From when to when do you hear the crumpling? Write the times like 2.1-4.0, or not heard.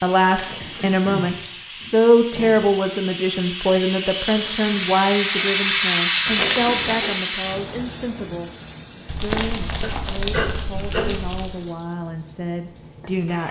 0.3-1.6, 6.2-7.1, 9.1-11.6.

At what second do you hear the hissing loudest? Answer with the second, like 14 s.
6 s.